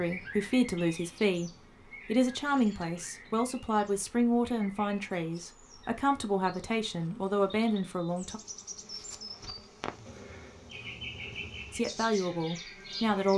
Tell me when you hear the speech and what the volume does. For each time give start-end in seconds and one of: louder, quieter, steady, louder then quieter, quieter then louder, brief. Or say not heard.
0.0-8.4 steady
11.7-13.3 brief.